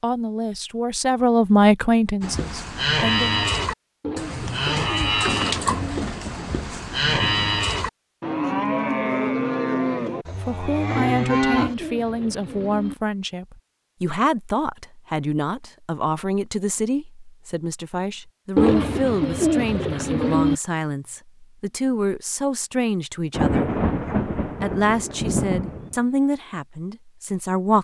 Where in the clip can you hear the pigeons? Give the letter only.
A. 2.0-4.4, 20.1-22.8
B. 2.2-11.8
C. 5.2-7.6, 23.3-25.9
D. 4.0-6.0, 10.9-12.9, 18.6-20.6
D.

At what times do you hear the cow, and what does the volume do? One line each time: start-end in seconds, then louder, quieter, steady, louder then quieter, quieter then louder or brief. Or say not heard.
2.2-11.8 steady.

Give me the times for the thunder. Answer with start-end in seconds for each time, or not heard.
5.2-7.6, 23.3-25.9.